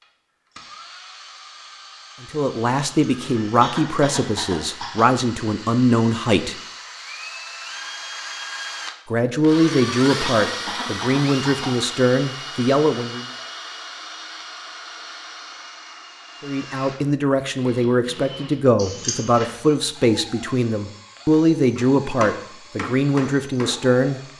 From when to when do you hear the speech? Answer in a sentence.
The speech can be heard from 2.2 to 6.6 s, from 9.1 to 13.2 s and from 16.4 to 24.3 s.